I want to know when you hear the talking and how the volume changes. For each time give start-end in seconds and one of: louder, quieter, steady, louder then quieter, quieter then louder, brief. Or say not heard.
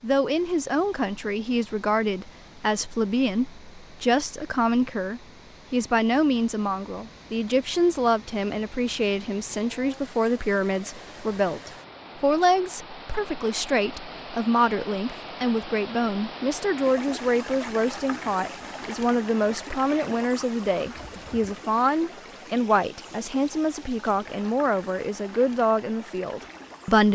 0.0-27.1 steady.